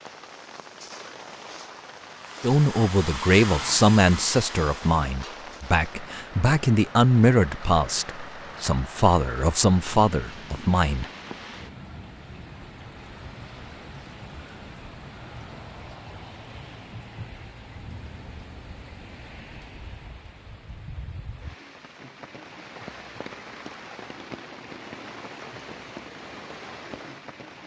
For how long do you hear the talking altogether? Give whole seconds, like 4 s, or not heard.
9 s.